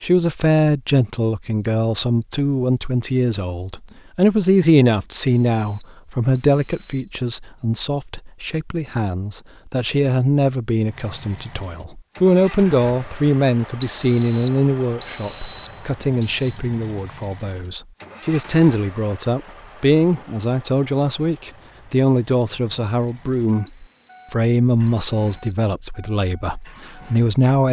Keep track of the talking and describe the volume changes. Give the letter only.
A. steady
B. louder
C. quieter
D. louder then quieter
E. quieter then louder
A.